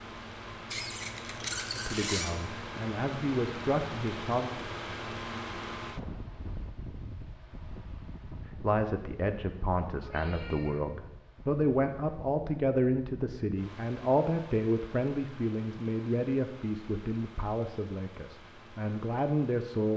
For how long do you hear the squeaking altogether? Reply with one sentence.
You can hear the squeaking for 2 seconds altogether.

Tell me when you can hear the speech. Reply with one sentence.
You can hear the speech from 1.8 to 4.5 s and from 8.6 to 19.9 s.